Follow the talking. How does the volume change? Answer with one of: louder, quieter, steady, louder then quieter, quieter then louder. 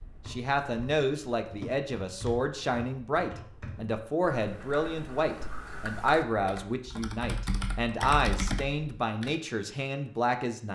steady.